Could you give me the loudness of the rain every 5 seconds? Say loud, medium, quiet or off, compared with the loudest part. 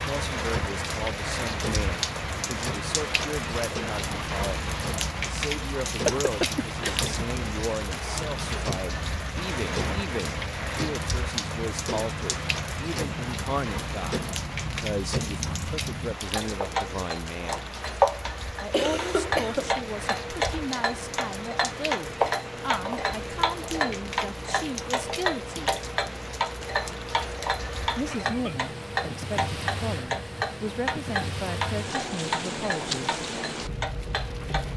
loud, loud, loud, medium, medium, medium, loud.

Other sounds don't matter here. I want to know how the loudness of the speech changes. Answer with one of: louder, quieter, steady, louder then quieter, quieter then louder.
steady.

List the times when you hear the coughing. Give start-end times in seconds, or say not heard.
5.6-7.2, 18.7-19.8, 27.9-28.6.